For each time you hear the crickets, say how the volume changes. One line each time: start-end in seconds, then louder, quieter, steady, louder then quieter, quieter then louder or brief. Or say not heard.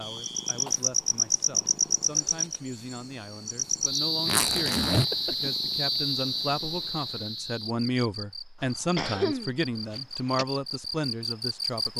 0.0-11.9 quieter.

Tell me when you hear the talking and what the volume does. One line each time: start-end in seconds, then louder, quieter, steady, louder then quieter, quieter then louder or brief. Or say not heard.
0.0-11.9 louder.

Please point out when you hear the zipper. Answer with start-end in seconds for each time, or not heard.
4.2-5.0.